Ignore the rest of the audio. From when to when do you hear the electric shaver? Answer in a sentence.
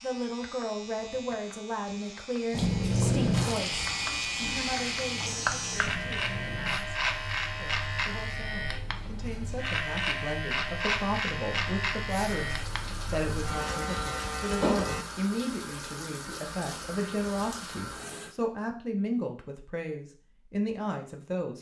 The electric shaver can be heard from 0.0 to 15.1 s.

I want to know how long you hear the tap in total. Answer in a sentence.
The tap can be heard for 11 seconds in total.